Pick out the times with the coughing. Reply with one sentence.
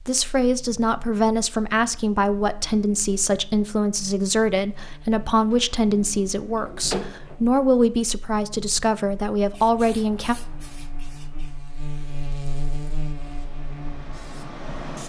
The coughing can't be heard in this clip.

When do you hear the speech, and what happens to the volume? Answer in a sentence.
The speech can be heard from 0.1 to 10.3 s, at a steady volume.